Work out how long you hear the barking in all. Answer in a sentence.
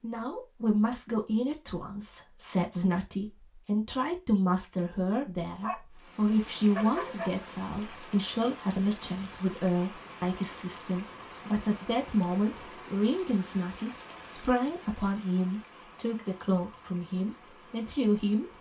The barking can be heard for 2 seconds in total.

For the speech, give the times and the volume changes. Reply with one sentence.
The speech can be heard from 0.0 to 18.5 s, at a steady volume.